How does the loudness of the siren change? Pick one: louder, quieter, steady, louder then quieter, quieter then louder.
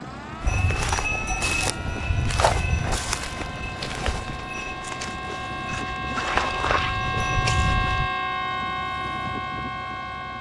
louder.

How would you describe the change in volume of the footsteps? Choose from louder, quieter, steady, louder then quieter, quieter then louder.
quieter then louder.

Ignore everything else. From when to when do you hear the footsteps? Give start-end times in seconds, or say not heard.
0.4-8.1.